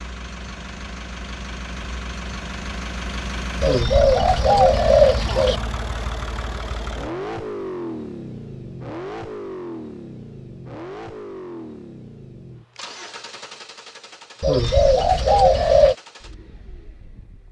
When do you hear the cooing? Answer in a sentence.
You can hear the cooing from 3.6 to 5.6 s and from 14.4 to 15.9 s.